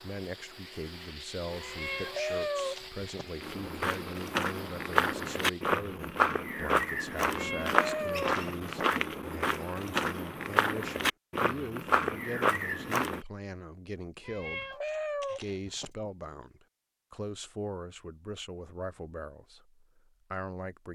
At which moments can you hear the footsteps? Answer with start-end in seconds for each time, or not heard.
3.4-13.2.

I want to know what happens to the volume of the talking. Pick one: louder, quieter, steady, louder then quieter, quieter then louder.
steady.